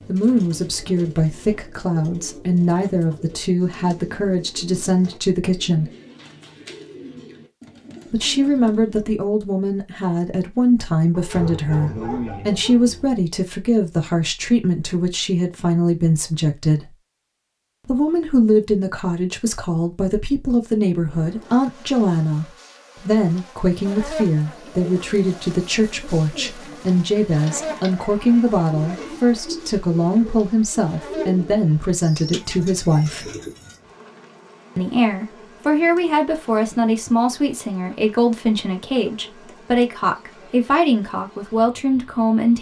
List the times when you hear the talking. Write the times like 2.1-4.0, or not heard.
0.1-5.9, 8.1-16.9, 17.9-33.3, 34.8-42.5.